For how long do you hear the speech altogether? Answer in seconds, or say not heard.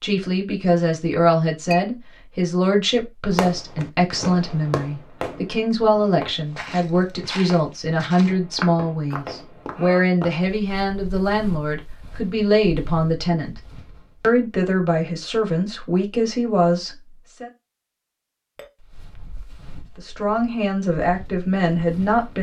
19 s.